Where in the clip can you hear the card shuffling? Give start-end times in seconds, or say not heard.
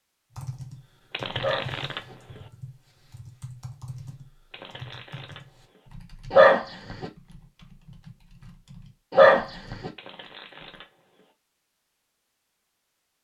1.1-2.5, 4.5-5.9, 9.9-11.3.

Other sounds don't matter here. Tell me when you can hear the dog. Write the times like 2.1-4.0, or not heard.
1.4-2.1, 6.3-7.0, 9.1-9.9.